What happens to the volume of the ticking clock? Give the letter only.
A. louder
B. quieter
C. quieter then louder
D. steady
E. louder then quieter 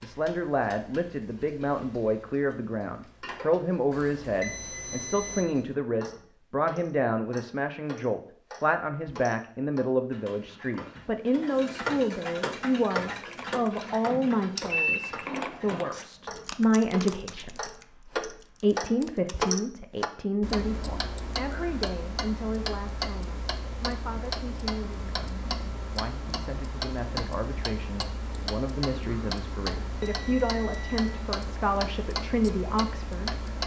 A.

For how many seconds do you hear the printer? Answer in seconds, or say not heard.
not heard.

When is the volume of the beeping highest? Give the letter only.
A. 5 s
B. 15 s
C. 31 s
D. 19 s
B.